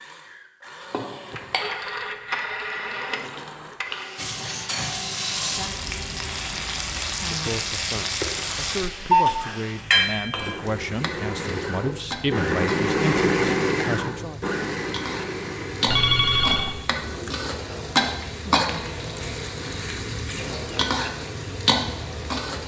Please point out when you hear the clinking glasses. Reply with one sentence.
You can hear the clinking glasses from 0.9 to 1.8 s.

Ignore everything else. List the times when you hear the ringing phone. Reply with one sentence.
You can hear the ringing phone from 1.4 to 4.0 s, from 8.8 to 9.4 s and from 15.8 to 16.8 s.